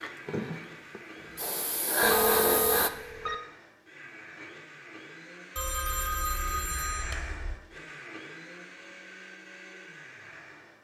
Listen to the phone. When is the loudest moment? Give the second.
2 s.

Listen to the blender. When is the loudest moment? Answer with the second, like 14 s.
7 s.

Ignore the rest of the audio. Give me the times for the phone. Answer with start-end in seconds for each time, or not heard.
2.0-3.4, 5.5-7.5.